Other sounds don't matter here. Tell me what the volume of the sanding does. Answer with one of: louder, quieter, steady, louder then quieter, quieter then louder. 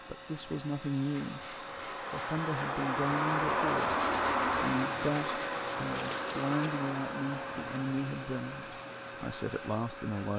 louder then quieter.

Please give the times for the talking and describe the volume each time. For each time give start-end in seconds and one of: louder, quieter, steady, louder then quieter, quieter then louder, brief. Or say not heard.
0.1-10.3 steady.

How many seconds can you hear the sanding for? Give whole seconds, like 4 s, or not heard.
9 s.